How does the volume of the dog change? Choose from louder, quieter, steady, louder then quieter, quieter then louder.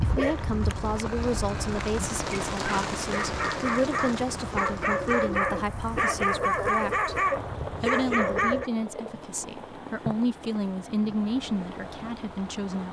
louder.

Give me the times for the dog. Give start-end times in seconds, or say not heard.
0.0-8.7.